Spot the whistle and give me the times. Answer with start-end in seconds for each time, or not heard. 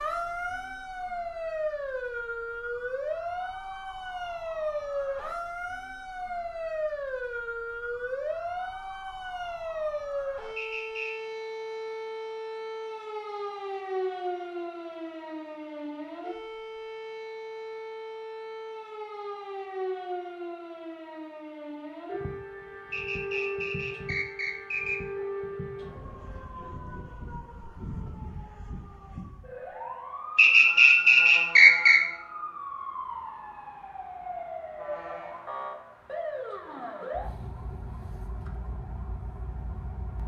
10.6-11.2, 22.9-25.0, 30.4-32.0.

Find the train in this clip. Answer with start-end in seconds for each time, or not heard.
not heard.